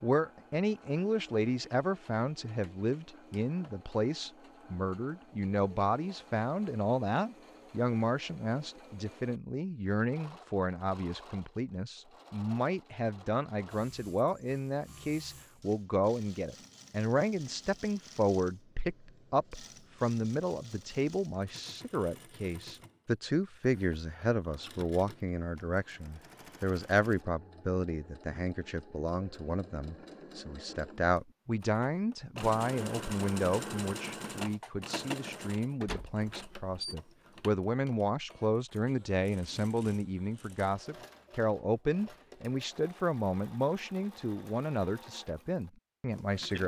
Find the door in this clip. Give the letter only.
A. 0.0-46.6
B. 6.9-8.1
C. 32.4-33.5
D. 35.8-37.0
D.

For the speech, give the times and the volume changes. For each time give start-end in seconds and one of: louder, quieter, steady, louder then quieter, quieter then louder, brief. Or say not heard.
0.0-46.6 steady.